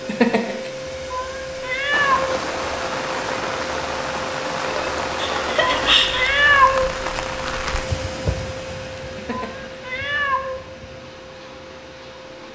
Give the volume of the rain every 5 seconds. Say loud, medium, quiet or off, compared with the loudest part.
loud, loud, quiet.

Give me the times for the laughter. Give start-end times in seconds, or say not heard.
0.1-0.7, 5.2-6.4, 9.2-9.6.